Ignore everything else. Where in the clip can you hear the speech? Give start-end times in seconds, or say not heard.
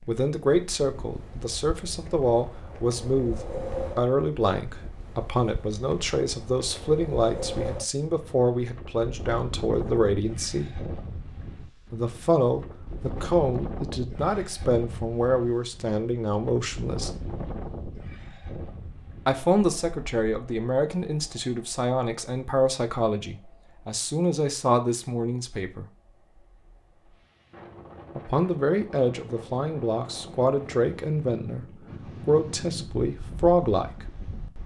0.1-10.8, 11.9-17.2, 19.2-25.9, 28.1-34.0.